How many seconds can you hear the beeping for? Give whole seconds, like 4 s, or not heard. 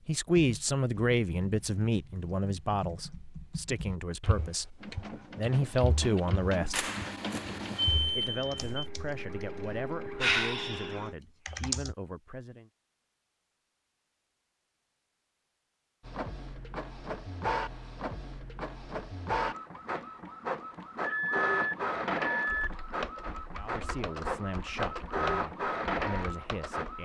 4 s.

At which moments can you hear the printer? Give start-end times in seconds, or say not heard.
4.8-11.2, 16.0-27.0.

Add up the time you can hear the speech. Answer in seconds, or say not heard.
15 s.